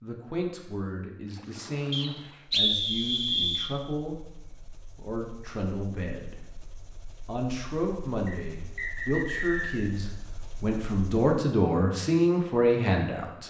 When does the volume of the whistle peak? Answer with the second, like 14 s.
3 s.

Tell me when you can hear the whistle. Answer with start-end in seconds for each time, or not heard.
1.9-3.7, 8.2-9.8.